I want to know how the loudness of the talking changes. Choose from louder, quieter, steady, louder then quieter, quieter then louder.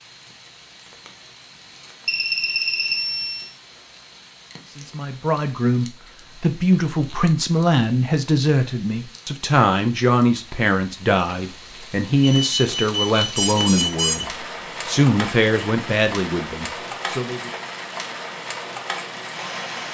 steady.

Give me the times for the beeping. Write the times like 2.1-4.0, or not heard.
2.0-3.5, 12.2-14.2.